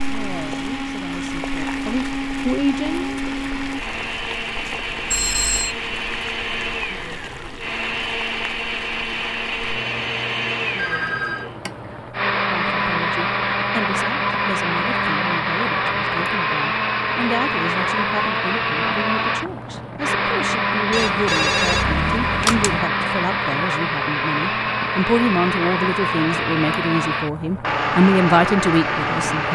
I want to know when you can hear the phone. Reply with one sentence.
You can hear the phone from 5.1 to 5.8 s, from 10.8 to 11.5 s and from 20.9 to 22.9 s.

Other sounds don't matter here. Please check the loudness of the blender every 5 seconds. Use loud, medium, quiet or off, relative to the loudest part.
medium, medium, loud, loud, loud, loud.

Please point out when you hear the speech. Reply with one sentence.
The speech can be heard from 0.0 to 3.1 s and from 12.3 to 29.4 s.